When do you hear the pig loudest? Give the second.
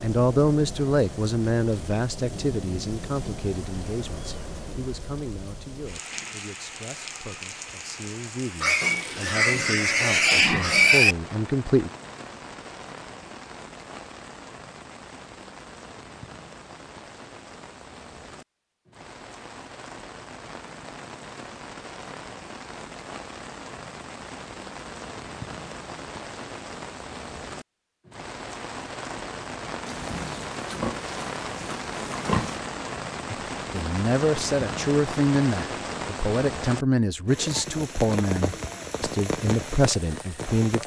11 s.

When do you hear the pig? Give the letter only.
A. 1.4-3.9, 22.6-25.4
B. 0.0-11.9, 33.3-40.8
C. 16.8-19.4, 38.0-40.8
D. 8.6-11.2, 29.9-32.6
D.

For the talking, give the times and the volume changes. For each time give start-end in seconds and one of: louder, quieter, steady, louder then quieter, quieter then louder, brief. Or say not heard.
0.0-11.9 quieter then louder
33.3-40.8 steady.